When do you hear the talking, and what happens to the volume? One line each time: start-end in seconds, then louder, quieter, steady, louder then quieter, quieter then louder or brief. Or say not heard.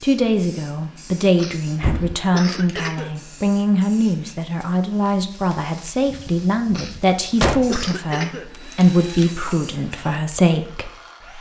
0.0-11.3 steady.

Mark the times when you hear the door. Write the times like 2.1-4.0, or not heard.
1.8-2.2, 6.0-7.8.